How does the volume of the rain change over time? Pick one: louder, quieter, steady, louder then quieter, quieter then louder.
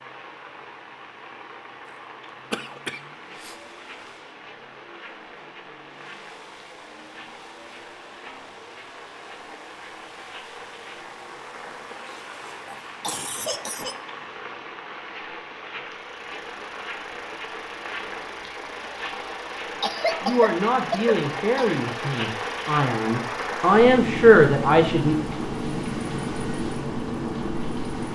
louder.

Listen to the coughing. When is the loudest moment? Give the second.
20 s.